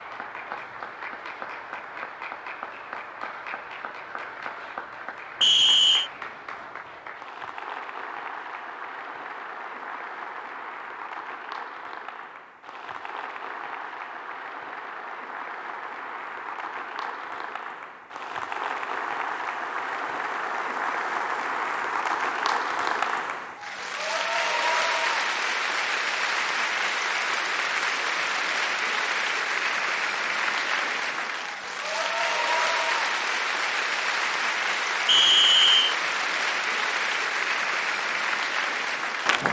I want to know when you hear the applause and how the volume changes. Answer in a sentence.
The applause can be heard from 0.0 to 39.4 s, getting louder.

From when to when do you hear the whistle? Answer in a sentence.
The whistle can be heard from 5.4 to 6.1 s and from 35.0 to 36.0 s.